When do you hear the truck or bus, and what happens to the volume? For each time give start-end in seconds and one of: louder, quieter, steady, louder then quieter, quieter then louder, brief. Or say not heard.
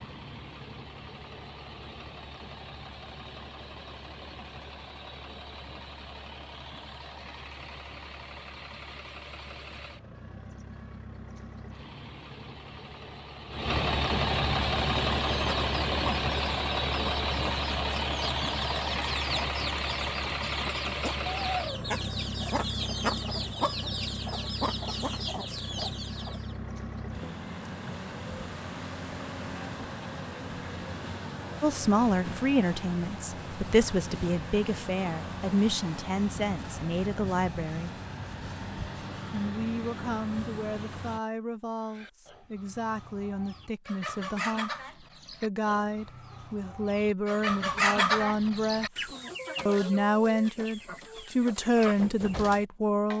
0.0-41.2 louder then quieter.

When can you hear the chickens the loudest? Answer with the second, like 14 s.
48 s.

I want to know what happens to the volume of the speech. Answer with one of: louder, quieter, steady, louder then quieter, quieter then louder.
quieter then louder.